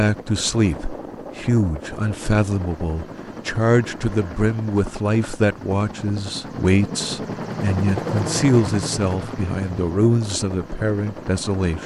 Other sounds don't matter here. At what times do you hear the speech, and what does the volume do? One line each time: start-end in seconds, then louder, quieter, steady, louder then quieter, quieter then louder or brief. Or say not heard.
0.0-11.8 steady.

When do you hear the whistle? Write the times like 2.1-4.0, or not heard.
not heard.